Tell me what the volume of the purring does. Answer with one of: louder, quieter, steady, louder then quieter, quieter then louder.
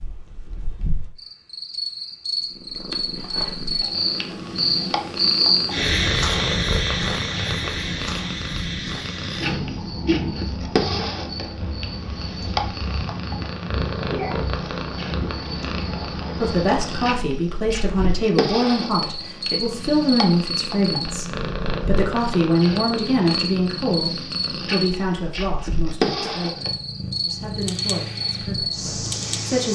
steady.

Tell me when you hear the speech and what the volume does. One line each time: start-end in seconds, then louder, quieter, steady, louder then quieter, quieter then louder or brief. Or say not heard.
16.4-29.7 quieter.